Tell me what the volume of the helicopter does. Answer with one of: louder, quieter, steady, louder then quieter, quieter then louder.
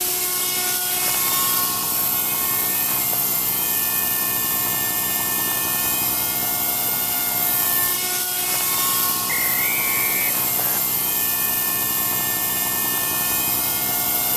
steady.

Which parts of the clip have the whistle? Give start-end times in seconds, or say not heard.
9.2-10.8.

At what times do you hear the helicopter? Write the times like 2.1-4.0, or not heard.
0.0-14.3.